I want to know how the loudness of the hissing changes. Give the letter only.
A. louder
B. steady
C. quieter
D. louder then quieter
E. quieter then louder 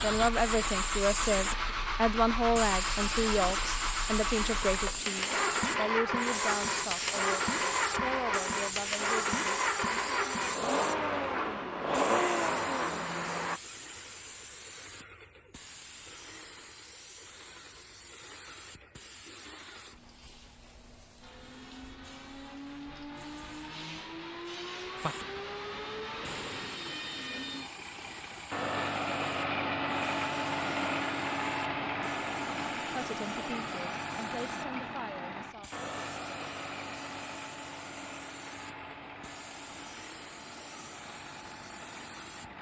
C.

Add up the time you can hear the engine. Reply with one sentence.
You can hear the engine for 35 seconds altogether.